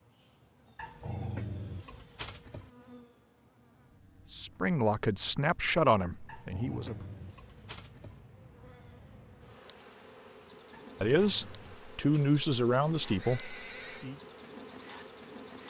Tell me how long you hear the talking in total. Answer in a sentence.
You can hear the talking for 6 seconds altogether.